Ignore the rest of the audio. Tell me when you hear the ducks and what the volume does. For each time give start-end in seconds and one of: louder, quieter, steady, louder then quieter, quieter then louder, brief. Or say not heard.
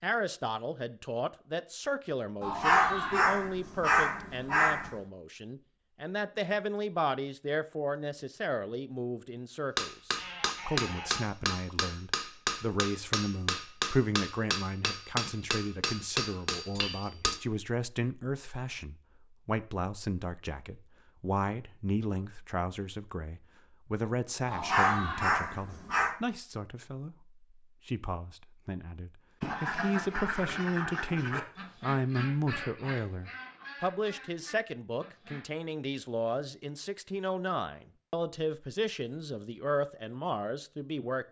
29.4-35.5 quieter.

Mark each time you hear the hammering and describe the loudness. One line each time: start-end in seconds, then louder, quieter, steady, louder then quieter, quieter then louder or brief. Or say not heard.
9.8-17.4 steady.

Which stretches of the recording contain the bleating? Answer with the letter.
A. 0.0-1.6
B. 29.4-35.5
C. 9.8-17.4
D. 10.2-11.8
D.